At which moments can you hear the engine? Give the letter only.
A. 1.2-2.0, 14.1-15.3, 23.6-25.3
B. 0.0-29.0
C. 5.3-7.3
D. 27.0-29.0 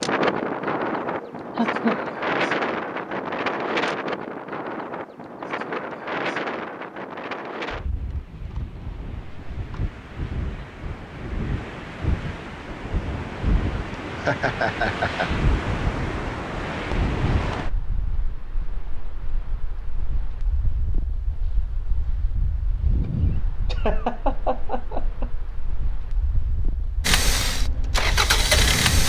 D.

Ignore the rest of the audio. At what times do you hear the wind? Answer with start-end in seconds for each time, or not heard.
0.0-29.0.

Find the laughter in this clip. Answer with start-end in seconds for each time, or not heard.
1.2-2.0, 14.1-15.3, 23.6-25.3.